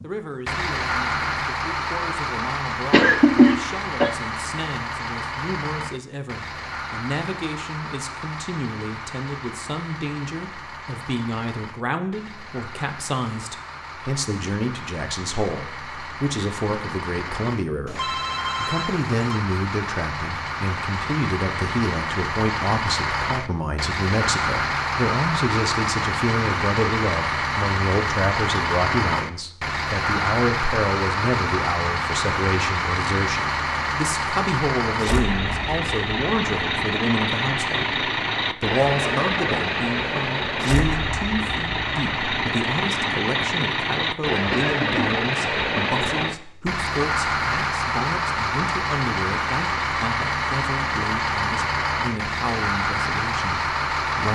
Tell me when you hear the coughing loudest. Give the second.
3 s.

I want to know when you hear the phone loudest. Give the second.
18 s.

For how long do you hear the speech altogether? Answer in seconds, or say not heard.
54 s.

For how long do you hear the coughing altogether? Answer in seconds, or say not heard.
2 s.